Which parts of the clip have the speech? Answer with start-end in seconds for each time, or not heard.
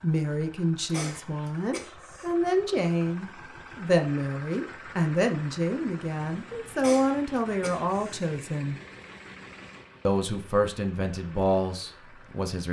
0.0-8.8, 10.1-12.6.